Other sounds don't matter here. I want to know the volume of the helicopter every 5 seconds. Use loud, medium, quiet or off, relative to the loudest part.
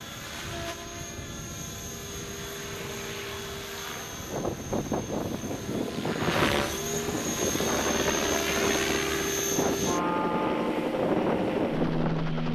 medium, loud, loud.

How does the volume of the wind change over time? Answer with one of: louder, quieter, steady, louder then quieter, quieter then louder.
steady.